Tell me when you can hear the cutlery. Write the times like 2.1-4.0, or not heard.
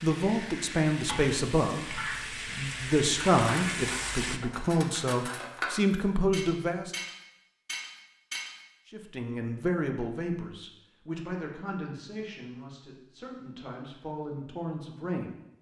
3.1-8.7.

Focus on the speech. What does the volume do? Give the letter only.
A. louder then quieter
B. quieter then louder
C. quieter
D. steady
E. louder
C.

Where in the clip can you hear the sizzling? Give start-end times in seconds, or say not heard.
0.0-4.4.